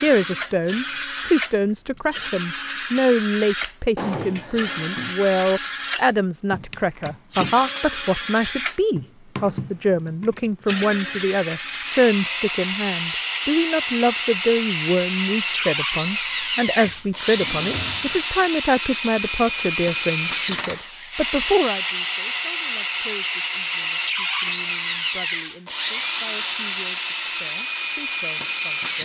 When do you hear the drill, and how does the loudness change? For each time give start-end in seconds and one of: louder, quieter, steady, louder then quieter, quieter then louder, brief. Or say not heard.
0.0-29.0 steady.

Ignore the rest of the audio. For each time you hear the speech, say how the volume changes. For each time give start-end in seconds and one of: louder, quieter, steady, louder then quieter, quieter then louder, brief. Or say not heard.
0.0-29.0 quieter.